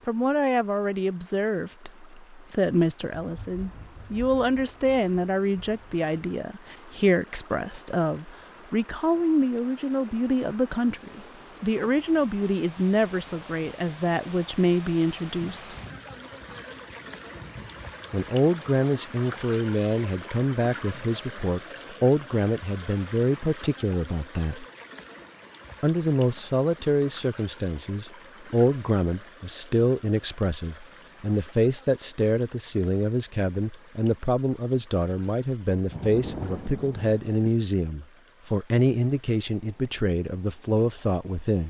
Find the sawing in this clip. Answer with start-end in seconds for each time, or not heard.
not heard.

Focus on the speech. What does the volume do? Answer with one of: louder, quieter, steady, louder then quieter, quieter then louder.
steady.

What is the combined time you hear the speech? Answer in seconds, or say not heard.
38 s.